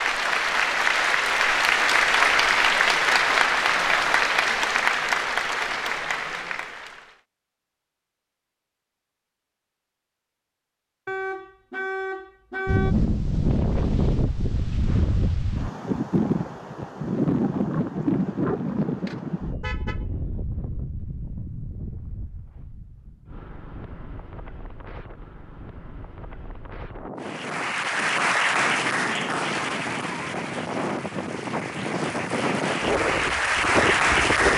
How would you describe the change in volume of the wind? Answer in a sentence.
The volume of the wind goes down, then up.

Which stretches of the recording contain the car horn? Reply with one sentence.
The car horn can be heard from 11.1 to 12.9 s and from 18.6 to 20.1 s.